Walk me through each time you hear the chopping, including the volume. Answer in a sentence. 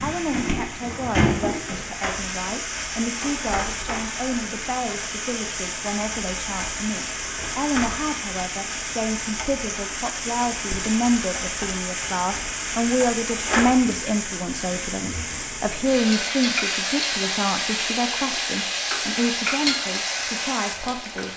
You can't hear the chopping here.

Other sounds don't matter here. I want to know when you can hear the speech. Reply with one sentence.
The speech can be heard from 0.0 to 21.3 s.